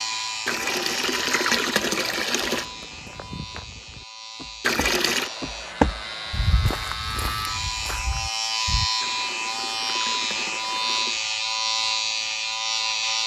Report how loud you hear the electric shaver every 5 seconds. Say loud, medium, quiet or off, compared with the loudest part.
medium, loud, loud.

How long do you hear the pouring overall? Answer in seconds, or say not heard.
5 s.